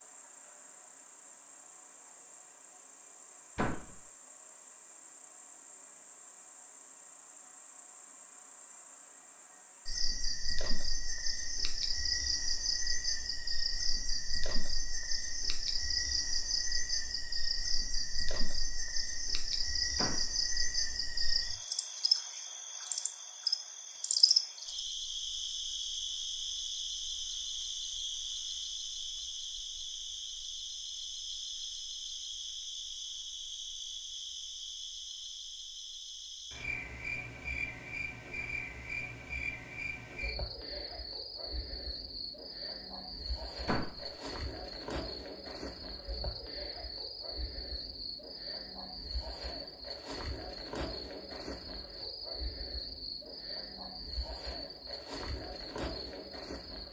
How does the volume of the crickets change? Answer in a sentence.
The loudness of the crickets goes up, then down.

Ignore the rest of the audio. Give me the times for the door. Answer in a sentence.
You can hear the door from 3.5 to 4.0 s, from 19.9 to 20.4 s and from 43.6 to 44.1 s.